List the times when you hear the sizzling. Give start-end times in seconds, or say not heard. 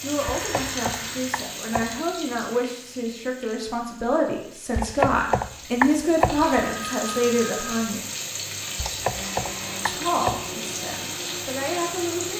0.0-12.3.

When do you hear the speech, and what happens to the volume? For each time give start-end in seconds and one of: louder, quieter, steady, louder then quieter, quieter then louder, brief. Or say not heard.
0.0-8.1 louder
9.8-12.3 brief.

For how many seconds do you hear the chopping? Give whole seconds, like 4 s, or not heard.
5 s.